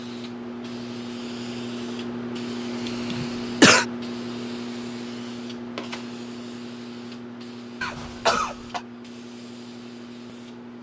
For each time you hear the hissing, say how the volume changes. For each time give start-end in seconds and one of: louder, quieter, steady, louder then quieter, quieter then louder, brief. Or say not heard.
0.0-10.7 quieter.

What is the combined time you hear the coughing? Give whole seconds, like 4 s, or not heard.
2 s.